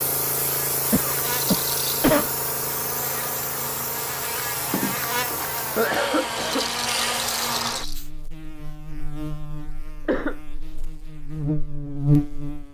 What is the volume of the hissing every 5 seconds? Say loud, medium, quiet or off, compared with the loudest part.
loud, loud, off.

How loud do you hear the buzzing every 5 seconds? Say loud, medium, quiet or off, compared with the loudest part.
medium, medium, loud.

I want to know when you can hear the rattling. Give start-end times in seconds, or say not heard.
1.2-2.1, 6.3-8.0.